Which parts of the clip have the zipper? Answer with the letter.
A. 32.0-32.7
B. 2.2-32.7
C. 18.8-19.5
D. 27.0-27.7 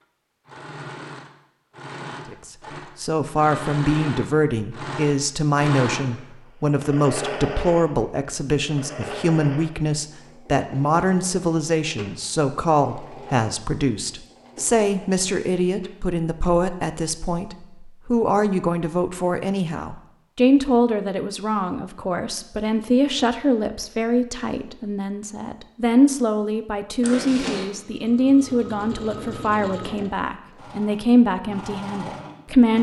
D.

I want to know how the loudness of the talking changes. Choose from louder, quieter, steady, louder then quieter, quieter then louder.
steady.